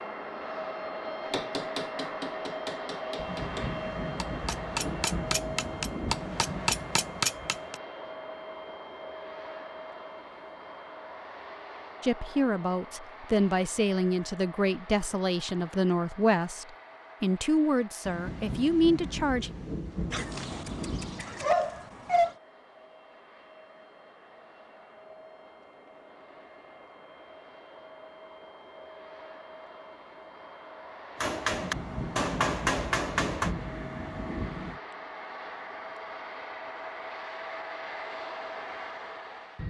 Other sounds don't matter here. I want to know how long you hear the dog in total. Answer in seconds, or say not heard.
2 s.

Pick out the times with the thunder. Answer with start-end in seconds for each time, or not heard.
3.1-7.3, 18.1-21.2, 31.5-34.8.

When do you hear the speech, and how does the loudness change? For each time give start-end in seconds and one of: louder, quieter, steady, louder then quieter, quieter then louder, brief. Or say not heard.
12.0-19.5 steady.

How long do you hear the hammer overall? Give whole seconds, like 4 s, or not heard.
9 s.